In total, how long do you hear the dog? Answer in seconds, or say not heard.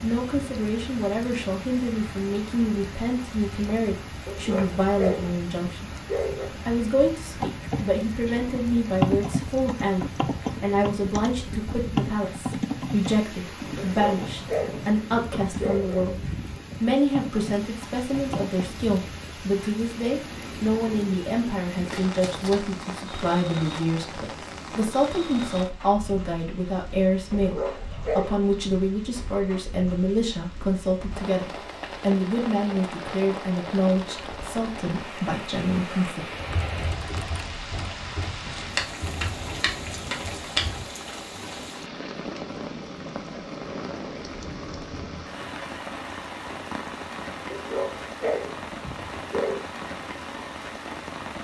8 s.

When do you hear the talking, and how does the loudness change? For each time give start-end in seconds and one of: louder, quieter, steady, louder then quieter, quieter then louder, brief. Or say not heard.
0.0-16.2 steady
16.8-36.2 steady.